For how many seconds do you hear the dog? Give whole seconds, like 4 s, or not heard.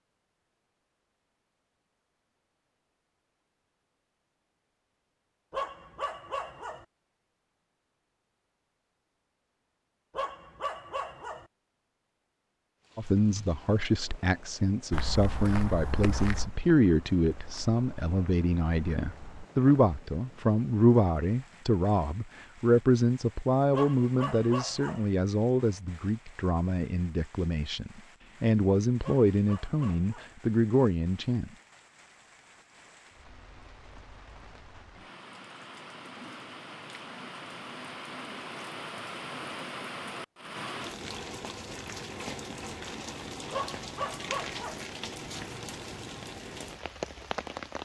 7 s.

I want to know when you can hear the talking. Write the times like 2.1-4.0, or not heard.
12.9-31.5.